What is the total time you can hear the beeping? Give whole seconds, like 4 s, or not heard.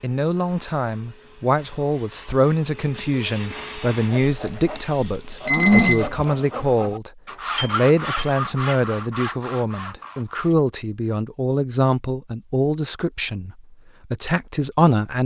2 s.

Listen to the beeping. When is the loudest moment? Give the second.
6 s.